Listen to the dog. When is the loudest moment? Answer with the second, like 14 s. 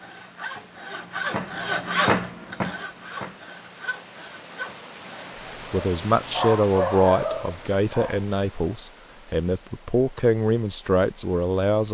7 s.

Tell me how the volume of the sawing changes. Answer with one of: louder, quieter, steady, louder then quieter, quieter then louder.
louder then quieter.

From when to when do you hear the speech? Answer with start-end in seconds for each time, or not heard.
5.7-11.8.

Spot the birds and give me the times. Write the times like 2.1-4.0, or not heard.
not heard.